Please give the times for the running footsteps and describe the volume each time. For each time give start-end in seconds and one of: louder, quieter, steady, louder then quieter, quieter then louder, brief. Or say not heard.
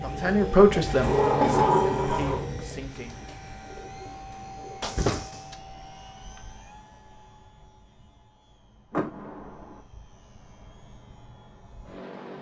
not heard.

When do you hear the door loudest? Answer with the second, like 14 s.
2 s.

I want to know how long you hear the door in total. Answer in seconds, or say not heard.
3 s.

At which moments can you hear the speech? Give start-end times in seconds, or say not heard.
0.0-3.1.